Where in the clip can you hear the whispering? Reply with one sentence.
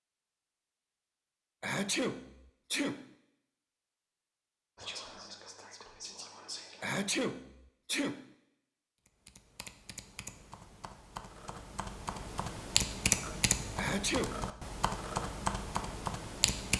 You can hear the whispering from 4.8 to 6.8 s.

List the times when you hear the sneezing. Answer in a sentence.
You can hear the sneezing from 1.6 to 3.1 s, from 6.8 to 8.3 s and from 13.8 to 14.4 s.